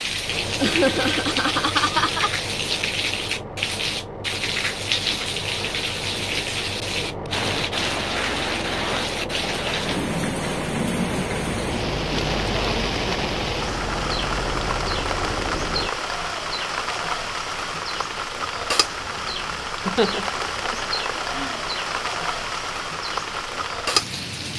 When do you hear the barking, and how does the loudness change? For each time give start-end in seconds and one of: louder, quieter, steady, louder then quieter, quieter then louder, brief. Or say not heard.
not heard.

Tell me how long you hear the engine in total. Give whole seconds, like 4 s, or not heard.
16 s.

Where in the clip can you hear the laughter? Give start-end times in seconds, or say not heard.
0.6-2.3, 19.8-21.6.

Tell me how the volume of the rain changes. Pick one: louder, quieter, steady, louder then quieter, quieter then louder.
steady.